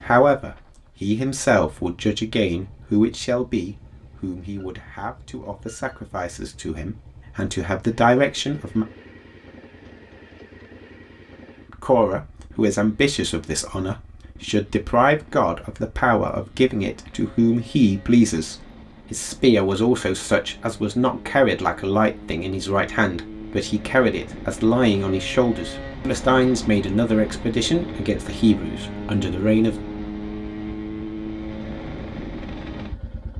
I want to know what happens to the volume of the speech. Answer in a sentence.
The volume of the speech stays about the same.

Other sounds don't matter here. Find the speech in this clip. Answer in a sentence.
You can hear the speech from 0.0 to 8.8 s and from 11.8 to 29.8 s.